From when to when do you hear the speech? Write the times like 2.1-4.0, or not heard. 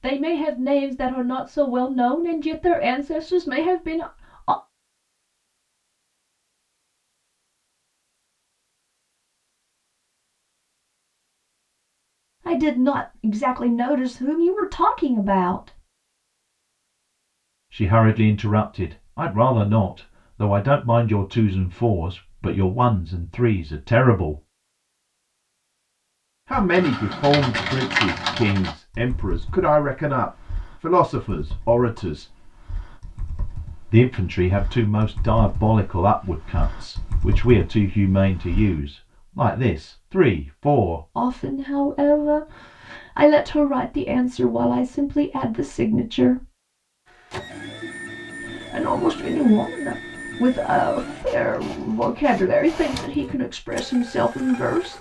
0.0-4.5, 12.4-15.7, 17.7-24.4, 26.5-32.2, 33.9-46.5, 48.5-54.9.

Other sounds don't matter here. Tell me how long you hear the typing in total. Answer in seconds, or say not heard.
12 s.